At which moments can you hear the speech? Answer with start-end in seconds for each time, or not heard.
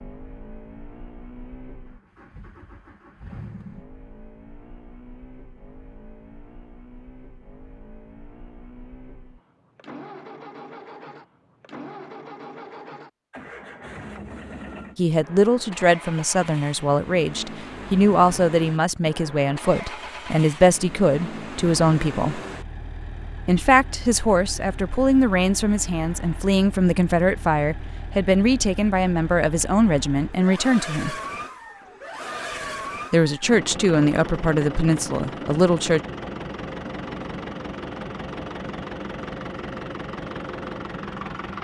14.9-22.4, 23.4-31.1, 33.1-36.0.